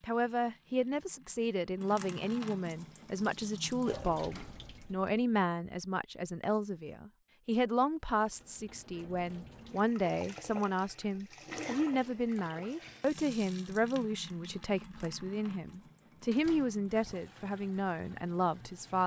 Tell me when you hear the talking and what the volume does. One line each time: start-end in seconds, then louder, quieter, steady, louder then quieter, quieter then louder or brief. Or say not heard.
0.0-19.0 steady.